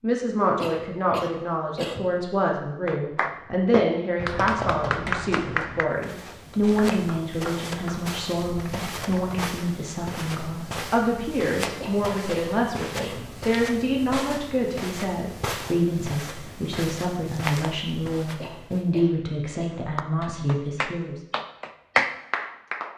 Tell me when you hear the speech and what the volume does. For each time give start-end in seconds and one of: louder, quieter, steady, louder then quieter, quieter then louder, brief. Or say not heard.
0.0-21.2 steady.